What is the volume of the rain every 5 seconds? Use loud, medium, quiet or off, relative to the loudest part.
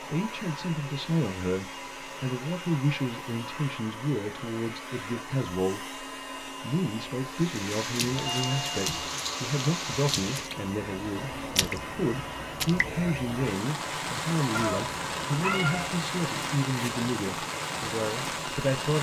off, loud, loud, loud.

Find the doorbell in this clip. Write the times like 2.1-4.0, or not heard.
8.2-9.1.